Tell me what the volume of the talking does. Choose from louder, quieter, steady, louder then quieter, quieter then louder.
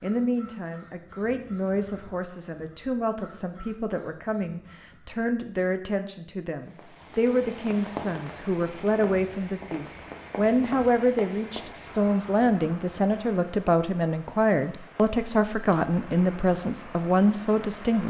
louder.